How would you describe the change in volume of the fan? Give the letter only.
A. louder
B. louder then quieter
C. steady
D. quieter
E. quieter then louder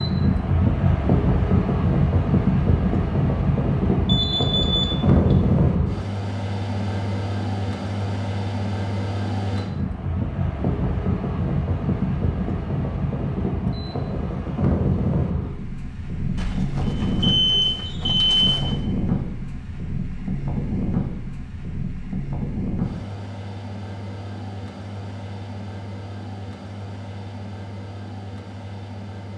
D.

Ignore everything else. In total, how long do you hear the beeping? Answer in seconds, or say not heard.
4 s.